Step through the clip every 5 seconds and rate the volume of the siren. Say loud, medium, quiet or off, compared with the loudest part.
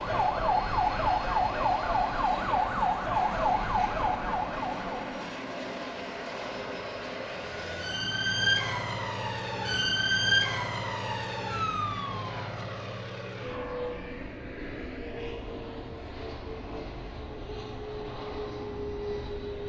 loud, loud, loud, off.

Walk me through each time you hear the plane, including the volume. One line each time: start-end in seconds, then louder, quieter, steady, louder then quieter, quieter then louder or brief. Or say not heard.
0.0-19.6 steady.